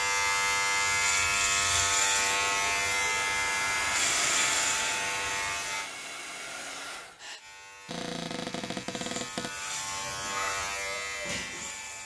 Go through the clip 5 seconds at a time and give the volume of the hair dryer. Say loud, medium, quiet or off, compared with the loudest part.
loud, medium, off.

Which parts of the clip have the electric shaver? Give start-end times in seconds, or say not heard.
0.0-5.9, 7.3-12.0.